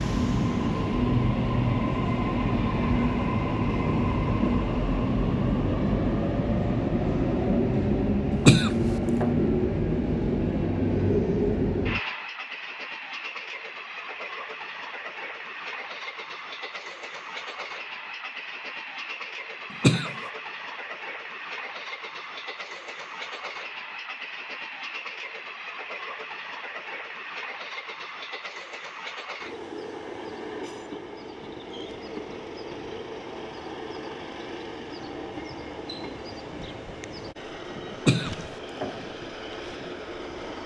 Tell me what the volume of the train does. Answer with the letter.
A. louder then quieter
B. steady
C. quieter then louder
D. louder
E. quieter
E.